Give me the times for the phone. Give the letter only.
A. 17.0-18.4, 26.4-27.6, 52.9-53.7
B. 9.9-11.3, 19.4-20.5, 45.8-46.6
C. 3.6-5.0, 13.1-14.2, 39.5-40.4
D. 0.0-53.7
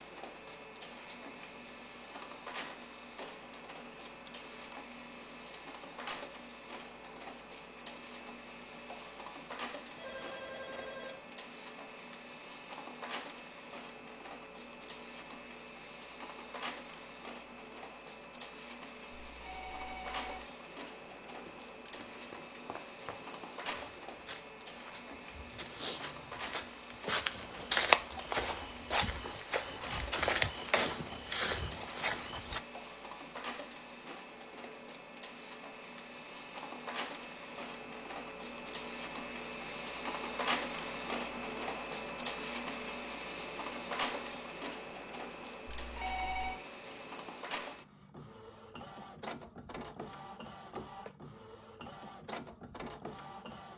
B.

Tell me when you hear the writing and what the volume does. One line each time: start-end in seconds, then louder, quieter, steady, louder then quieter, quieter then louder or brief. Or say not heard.
not heard.